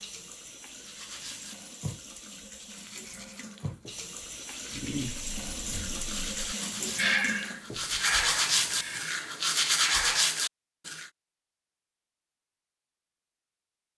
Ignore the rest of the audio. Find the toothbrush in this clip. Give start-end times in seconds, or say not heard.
0.8-11.1.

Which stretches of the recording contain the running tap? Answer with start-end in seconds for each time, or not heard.
0.0-9.1.